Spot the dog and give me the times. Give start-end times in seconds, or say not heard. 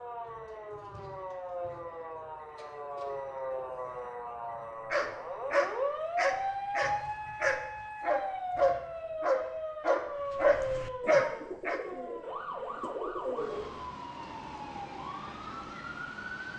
4.9-11.8.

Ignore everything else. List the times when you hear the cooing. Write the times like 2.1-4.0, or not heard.
10.2-13.8.